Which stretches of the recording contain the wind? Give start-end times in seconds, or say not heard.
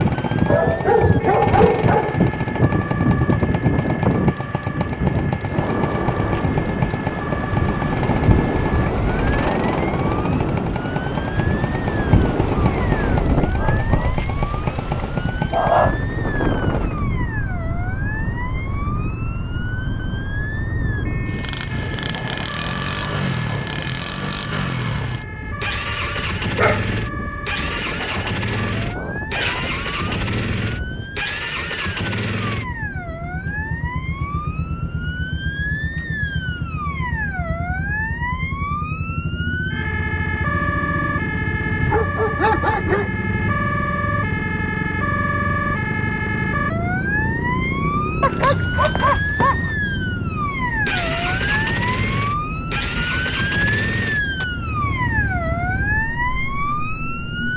0.0-31.2.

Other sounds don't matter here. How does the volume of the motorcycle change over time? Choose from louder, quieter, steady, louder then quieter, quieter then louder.
steady.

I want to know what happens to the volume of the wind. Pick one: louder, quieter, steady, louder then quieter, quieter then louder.
quieter.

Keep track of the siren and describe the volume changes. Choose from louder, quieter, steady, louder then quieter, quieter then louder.
louder.